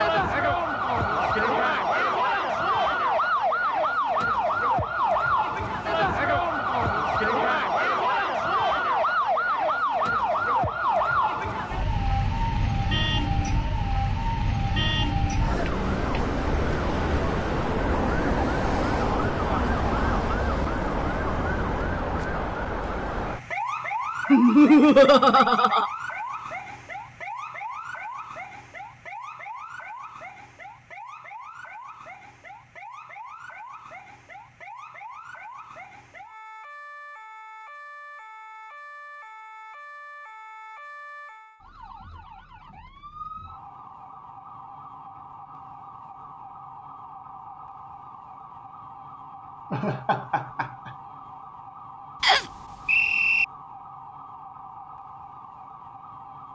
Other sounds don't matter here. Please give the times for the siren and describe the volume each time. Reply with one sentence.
The siren can be heard from 0.0 to 56.4 s, getting quieter.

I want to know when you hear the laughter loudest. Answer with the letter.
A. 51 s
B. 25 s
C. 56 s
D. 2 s
B.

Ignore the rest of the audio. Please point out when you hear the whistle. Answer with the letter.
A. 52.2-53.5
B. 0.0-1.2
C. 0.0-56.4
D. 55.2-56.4
A.